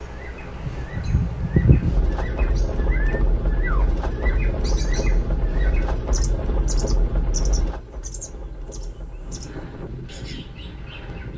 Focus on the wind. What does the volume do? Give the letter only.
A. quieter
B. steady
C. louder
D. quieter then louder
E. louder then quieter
A.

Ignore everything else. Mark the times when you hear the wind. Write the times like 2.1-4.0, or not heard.
0.0-11.3.